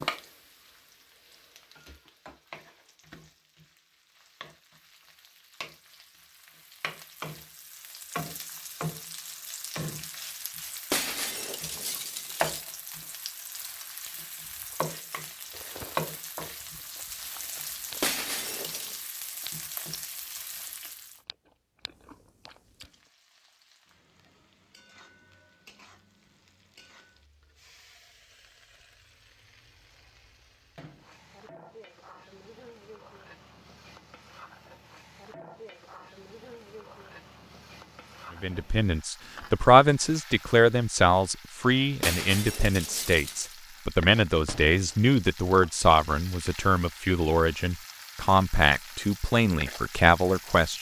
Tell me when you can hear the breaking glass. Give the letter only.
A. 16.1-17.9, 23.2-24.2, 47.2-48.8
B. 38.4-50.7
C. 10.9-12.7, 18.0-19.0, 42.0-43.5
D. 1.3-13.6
C.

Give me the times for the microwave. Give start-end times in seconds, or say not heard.
not heard.